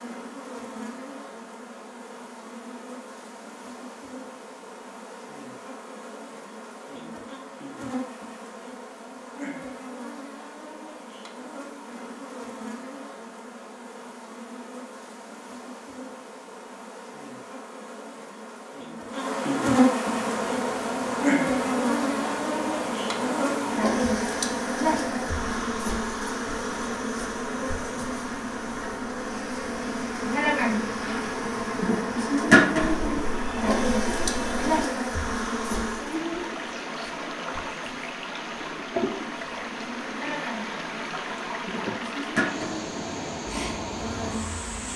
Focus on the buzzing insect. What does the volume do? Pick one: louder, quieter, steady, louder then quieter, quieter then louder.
louder then quieter.